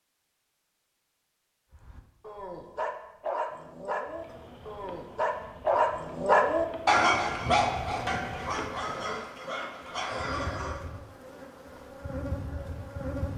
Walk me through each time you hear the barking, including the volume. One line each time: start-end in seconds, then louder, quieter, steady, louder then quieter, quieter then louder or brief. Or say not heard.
1.7-10.9 louder then quieter.